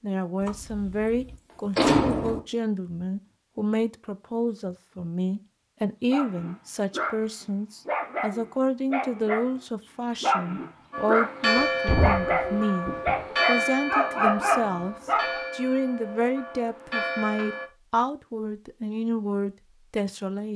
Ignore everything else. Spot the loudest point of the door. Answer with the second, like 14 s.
2 s.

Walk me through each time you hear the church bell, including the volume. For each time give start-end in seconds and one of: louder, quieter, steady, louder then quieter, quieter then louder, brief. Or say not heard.
10.9-17.6 quieter.